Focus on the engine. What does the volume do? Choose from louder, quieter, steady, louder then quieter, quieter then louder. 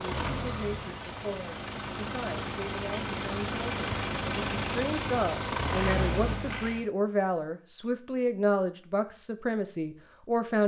louder.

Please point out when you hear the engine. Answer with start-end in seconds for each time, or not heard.
0.0-6.8.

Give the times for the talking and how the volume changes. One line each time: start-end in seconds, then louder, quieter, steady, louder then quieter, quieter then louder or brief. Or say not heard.
0.0-10.6 louder.